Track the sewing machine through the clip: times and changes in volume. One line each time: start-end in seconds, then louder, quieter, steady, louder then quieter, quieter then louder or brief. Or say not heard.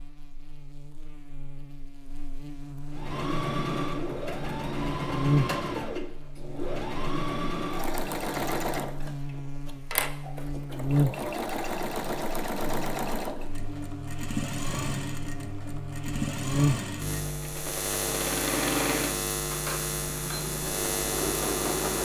2.9-22.0 steady.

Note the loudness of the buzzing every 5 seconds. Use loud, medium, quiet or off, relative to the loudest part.
medium, loud, loud, loud, loud.